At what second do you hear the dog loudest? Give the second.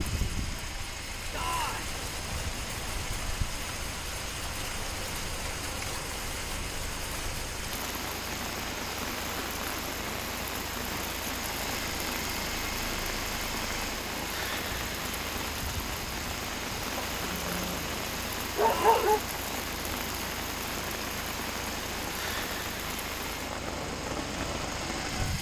19 s.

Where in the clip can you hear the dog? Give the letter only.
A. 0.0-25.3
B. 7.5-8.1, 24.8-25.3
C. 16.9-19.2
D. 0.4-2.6
C.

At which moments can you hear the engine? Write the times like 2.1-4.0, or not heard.
0.0-25.3.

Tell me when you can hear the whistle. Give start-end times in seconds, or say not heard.
not heard.